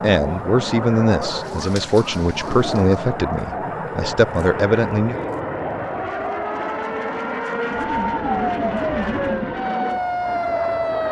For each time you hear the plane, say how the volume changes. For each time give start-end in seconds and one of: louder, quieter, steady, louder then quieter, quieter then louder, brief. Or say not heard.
0.0-11.0 steady.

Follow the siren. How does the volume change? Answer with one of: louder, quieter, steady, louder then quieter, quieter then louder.
louder.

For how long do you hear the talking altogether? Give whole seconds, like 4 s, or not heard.
5 s.